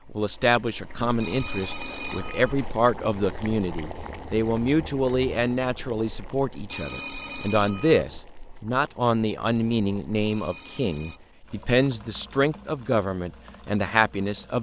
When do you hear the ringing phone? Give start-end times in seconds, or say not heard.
1.2-2.5, 6.7-8.1, 10.2-11.2.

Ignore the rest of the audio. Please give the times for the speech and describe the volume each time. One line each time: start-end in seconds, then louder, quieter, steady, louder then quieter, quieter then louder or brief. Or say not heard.
0.1-14.5 steady.